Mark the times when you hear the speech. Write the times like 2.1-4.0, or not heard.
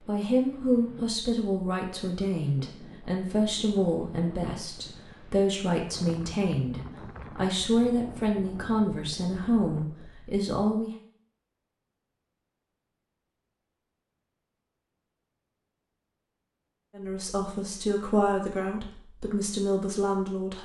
0.0-10.9, 16.9-20.6.